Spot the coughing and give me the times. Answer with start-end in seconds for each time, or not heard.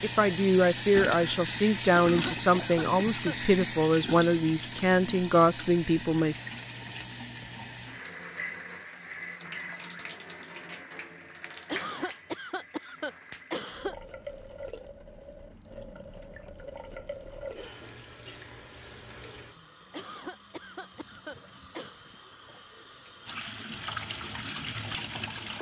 2.0-3.4, 11.7-13.9, 19.9-22.0.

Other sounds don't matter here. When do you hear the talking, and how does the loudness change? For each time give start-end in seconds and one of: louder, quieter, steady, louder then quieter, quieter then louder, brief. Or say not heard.
0.0-6.4 steady.